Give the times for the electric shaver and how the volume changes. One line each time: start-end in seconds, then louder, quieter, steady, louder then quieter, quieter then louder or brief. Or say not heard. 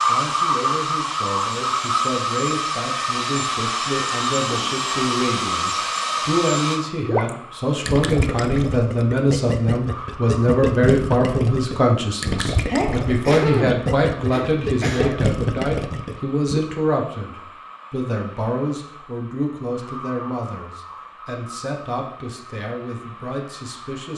not heard.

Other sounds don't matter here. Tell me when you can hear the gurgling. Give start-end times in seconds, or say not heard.
7.0-16.6.